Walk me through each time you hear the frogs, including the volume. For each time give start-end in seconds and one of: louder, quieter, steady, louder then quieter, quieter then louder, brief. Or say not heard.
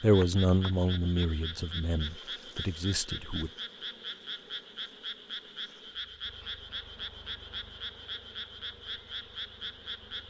0.0-10.2 steady.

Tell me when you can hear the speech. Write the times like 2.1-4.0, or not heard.
0.0-3.5.